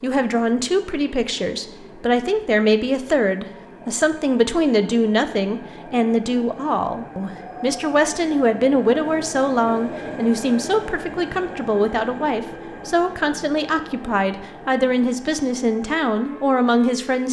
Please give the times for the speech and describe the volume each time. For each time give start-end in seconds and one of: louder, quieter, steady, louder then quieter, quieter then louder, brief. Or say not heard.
0.0-17.2 steady.